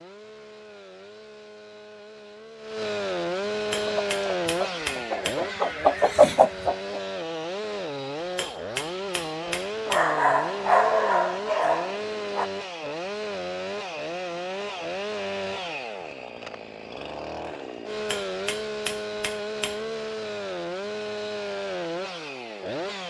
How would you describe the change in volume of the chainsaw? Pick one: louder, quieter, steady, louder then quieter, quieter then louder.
steady.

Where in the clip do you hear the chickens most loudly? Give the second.
6 s.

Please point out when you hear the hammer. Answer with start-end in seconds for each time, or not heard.
3.5-5.5, 8.2-10.2, 17.9-19.9.